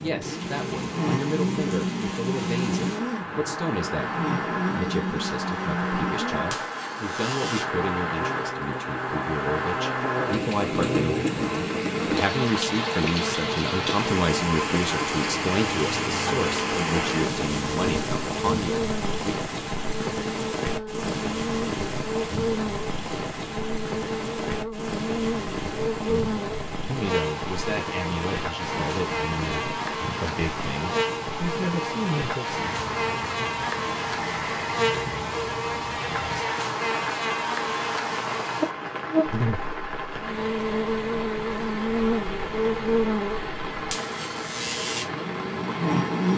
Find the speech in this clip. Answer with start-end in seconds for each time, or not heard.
0.0-19.4, 26.0-32.5.